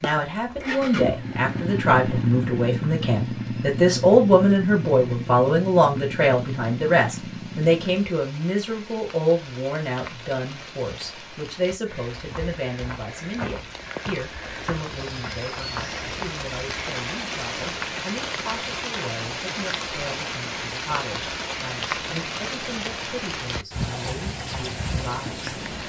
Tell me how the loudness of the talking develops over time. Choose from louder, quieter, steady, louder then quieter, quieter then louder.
quieter.